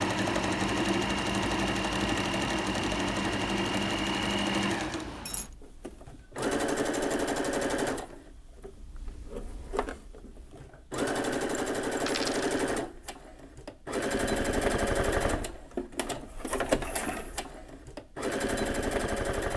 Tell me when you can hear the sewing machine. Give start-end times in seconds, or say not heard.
0.0-19.5.